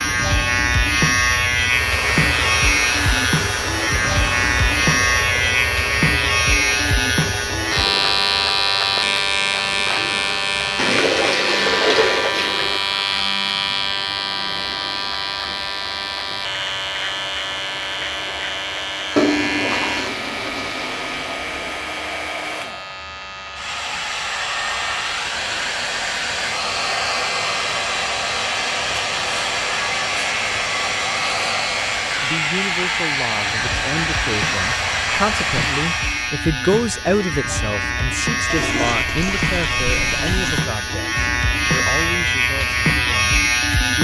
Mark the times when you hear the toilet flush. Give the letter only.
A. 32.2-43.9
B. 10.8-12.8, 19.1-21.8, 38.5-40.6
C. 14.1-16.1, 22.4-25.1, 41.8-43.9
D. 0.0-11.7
B.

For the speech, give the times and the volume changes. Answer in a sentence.
The speech can be heard from 32.2 to 43.9 s, getting louder then quieter.